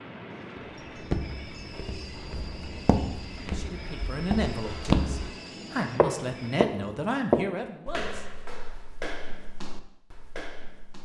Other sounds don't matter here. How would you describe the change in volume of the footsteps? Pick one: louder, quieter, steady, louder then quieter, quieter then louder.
louder then quieter.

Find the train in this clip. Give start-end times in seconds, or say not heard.
0.0-6.6.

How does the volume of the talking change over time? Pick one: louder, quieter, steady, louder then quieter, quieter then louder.
quieter then louder.